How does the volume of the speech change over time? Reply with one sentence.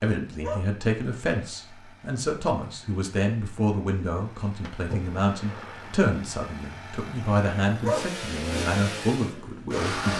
The loudness of the speech stays about the same.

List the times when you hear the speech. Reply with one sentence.
You can hear the speech from 0.0 to 10.1 s.